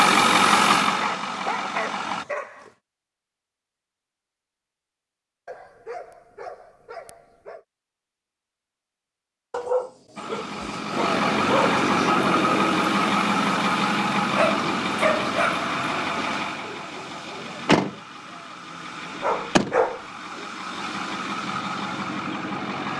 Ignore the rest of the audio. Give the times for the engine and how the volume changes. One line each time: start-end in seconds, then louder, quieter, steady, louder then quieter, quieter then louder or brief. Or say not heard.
0.0-2.2 brief
10.2-22.9 quieter.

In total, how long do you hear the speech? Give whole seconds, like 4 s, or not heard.
not heard.